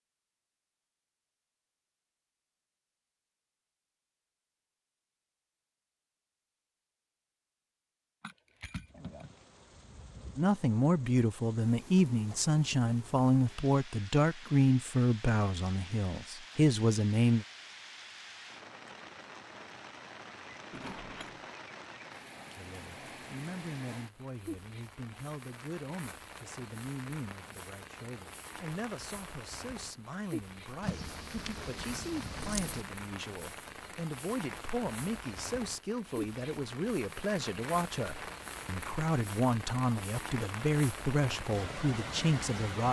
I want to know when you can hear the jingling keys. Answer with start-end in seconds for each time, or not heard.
8.2-9.3, 20.7-21.6, 30.8-32.9.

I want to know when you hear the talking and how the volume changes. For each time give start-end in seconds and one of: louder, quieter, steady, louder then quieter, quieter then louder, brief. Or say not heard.
10.3-17.4 steady
22.6-42.8 louder.